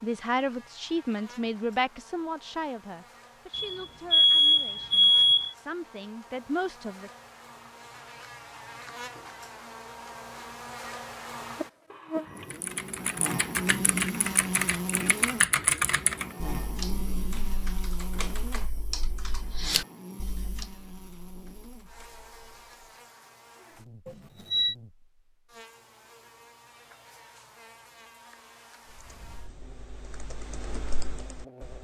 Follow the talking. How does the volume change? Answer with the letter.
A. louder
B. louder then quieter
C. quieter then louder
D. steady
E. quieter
C.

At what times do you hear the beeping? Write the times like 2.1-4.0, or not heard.
3.5-5.5, 11.9-12.6, 24.1-24.8.